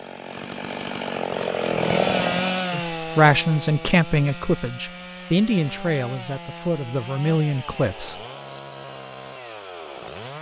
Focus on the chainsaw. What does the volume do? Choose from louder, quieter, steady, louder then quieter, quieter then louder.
quieter.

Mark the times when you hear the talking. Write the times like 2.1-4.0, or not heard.
2.7-8.2.